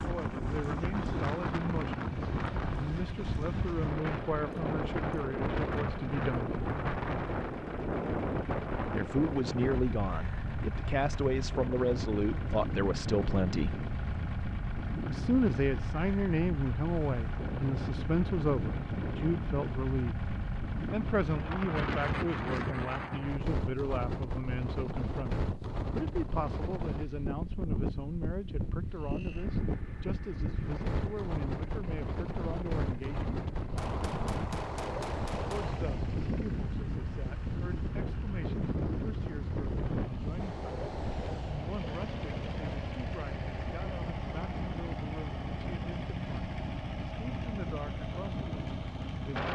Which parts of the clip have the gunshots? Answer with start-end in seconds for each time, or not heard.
33.8-35.8.